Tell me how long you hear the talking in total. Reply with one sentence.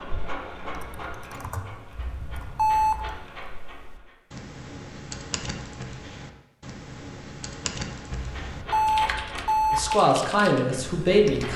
The talking can be heard for 2 seconds in total.